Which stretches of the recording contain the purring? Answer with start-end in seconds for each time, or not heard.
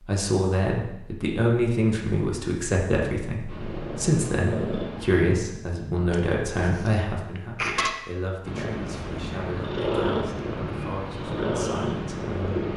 3.5-5.3, 8.4-12.7.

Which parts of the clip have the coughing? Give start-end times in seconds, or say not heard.
6.1-7.9.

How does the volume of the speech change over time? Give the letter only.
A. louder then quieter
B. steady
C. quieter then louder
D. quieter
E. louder
D.